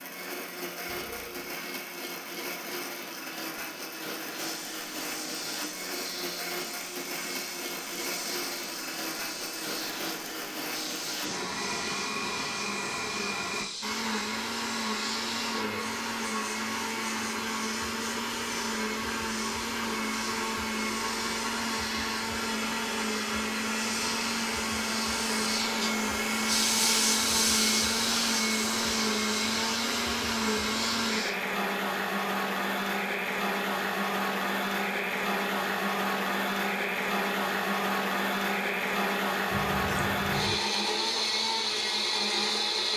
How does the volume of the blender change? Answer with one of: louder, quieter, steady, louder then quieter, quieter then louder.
louder.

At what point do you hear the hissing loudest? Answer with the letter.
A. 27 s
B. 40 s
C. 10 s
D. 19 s
A.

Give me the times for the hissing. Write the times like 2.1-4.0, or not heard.
4.3-31.4.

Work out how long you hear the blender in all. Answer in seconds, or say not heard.
43 s.